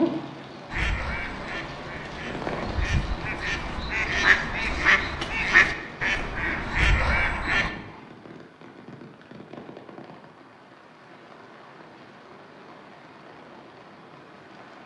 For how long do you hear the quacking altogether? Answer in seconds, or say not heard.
7 s.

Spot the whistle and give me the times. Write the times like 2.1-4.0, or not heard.
not heard.